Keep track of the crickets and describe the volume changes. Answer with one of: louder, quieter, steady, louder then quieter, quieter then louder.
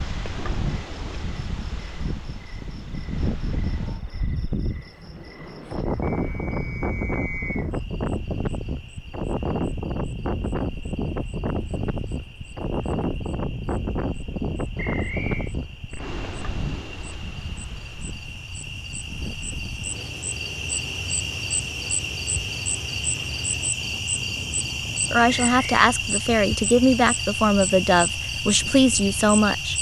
louder.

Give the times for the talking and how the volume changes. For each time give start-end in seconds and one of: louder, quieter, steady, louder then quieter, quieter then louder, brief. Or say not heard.
25.1-29.7 steady.